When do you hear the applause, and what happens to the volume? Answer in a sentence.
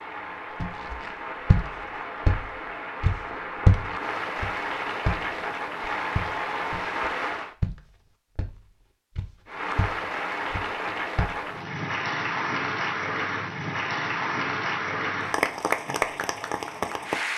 You can hear the applause from 0.0 to 7.5 s, getting louder; and from 9.4 to 17.3 s, at a steady volume.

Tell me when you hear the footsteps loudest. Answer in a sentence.
The loudest moment of the footsteps is at 4 seconds.